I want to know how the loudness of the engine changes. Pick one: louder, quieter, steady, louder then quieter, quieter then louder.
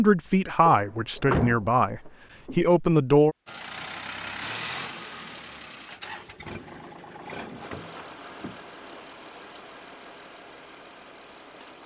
quieter.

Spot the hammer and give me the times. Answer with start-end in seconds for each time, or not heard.
not heard.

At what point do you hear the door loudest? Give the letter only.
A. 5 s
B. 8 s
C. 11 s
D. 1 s
D.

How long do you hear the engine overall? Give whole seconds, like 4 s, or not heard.
8 s.